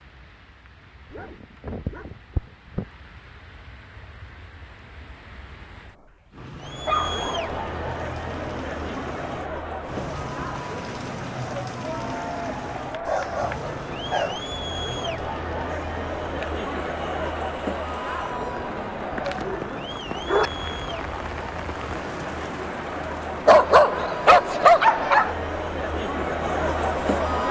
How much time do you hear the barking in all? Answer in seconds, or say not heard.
7 s.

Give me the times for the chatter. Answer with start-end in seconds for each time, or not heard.
6.6-27.4.